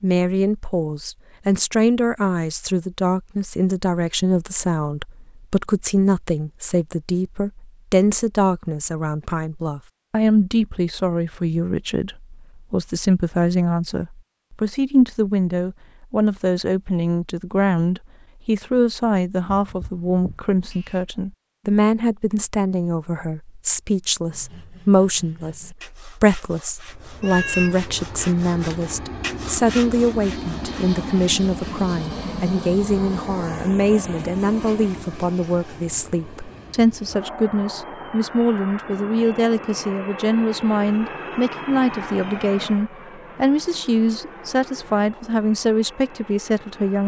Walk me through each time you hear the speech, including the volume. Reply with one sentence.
You can hear the speech from 0.0 to 47.0 s, at a steady volume.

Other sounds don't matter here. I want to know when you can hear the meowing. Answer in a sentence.
The meowing can be heard from 19.4 to 21.0 s and from 27.2 to 27.8 s.